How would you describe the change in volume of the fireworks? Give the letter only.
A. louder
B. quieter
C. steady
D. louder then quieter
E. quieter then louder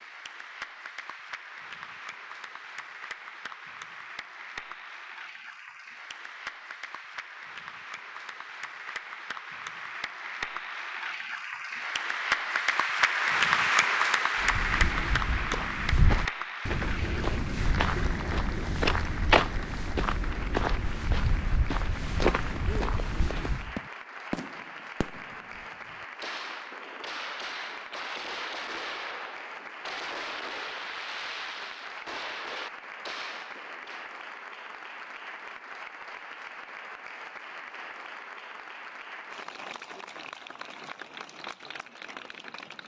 C.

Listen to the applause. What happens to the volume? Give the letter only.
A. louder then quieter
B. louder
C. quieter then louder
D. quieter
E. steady
A.